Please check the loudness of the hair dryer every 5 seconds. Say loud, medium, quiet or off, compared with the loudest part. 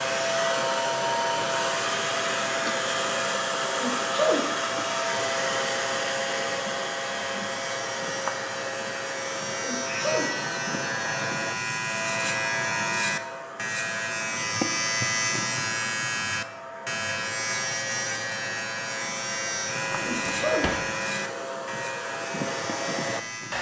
loud, loud, medium, quiet, medium.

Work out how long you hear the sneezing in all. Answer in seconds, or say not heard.
2 s.